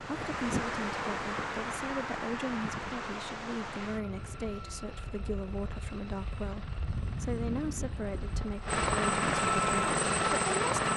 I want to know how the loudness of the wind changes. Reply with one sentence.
The loudness of the wind goes down, then up.